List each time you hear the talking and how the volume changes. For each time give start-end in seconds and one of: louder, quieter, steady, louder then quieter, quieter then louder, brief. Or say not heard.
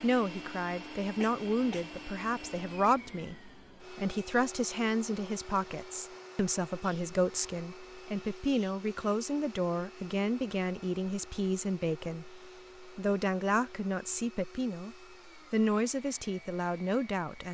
0.0-17.5 steady.